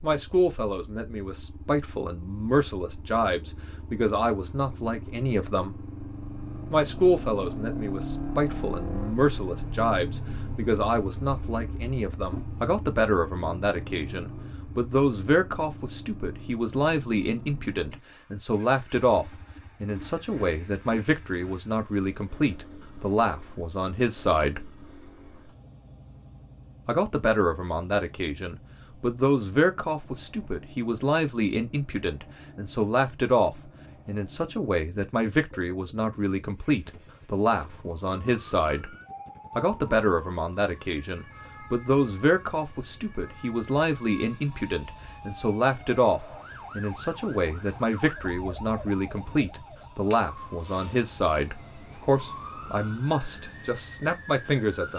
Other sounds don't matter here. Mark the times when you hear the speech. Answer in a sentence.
The speech can be heard from 0.0 to 5.8 s, from 6.7 to 24.7 s, from 26.9 to 38.9 s and from 39.5 to 54.9 s.